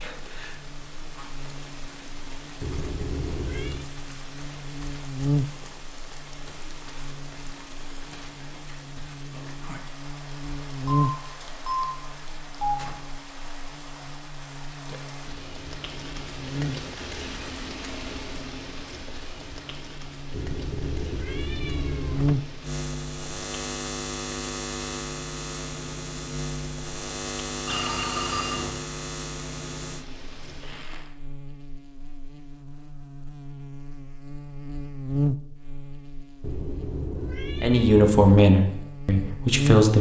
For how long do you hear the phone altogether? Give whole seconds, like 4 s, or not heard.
3 s.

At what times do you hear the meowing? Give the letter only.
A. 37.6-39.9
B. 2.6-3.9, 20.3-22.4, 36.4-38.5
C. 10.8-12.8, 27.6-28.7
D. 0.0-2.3
B.